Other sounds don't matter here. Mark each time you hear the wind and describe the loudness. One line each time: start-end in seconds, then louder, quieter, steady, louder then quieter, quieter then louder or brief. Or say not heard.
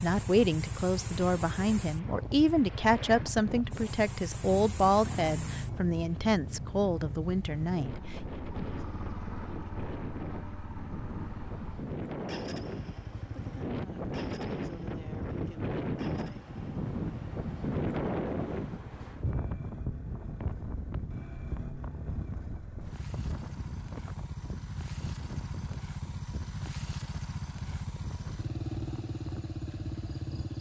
0.0-30.5 louder then quieter.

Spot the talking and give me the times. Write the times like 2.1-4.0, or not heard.
0.0-8.2.